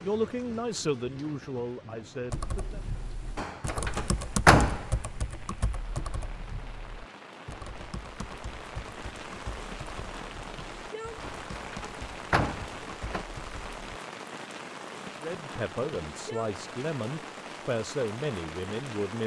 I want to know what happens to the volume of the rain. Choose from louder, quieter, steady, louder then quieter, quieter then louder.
louder.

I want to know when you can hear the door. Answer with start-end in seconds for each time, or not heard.
3.4-4.8, 11.2-13.2.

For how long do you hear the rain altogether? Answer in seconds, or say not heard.
19 s.